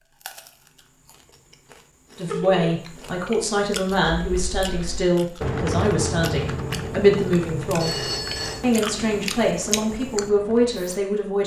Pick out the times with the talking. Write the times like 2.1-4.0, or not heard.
2.1-8.0, 8.6-11.4.